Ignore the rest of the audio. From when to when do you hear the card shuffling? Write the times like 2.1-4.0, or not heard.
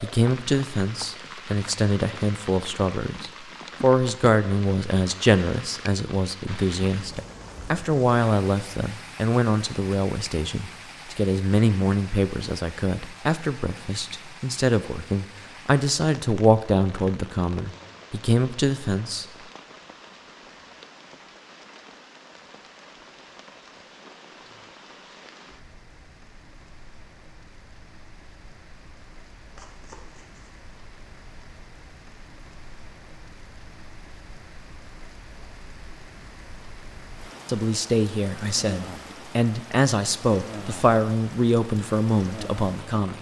29.6-30.5.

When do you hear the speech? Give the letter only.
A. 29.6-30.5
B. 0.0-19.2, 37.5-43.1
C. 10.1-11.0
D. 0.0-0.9
B.